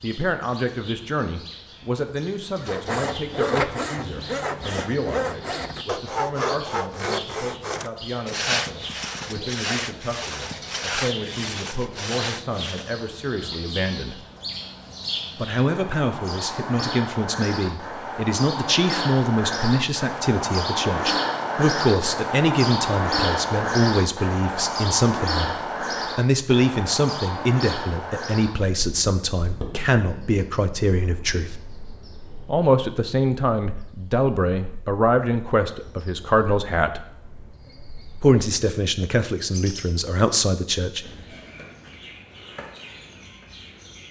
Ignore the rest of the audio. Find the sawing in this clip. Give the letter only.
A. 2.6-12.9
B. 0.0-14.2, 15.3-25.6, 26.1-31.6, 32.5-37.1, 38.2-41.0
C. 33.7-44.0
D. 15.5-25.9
A.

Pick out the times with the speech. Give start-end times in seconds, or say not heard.
0.0-14.2, 15.3-25.6, 26.1-31.6, 32.5-37.1, 38.2-41.0.